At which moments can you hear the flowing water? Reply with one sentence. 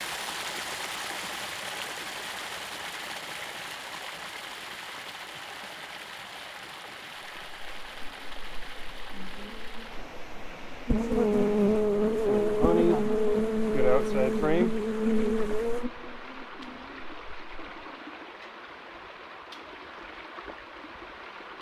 The flowing water can be heard from 0.0 to 21.5 s.